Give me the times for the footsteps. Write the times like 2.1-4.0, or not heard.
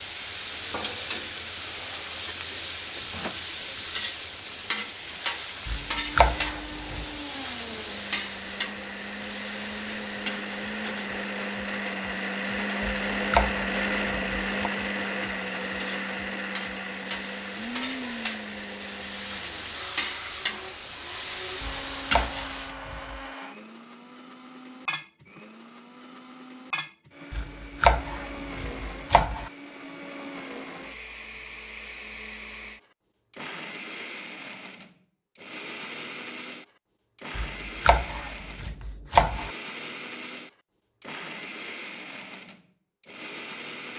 not heard.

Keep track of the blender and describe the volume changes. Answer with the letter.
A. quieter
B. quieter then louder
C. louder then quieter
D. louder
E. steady
A.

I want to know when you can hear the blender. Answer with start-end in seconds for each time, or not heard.
5.8-43.9.